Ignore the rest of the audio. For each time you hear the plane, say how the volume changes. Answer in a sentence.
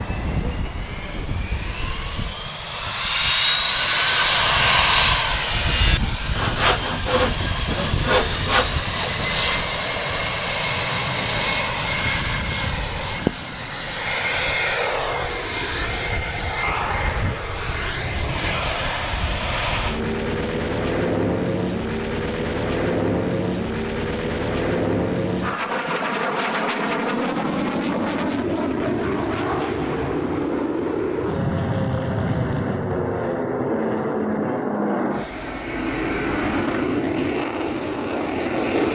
You can hear the plane from 0.0 to 38.9 s, at a steady volume.